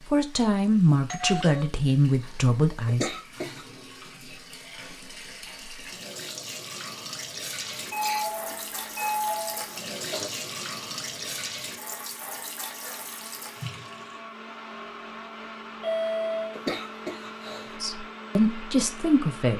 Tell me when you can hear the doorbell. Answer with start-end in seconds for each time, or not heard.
1.1-1.7, 7.9-9.7, 15.8-16.6.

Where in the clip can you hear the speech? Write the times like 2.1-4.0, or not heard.
0.1-3.1, 17.8-19.5.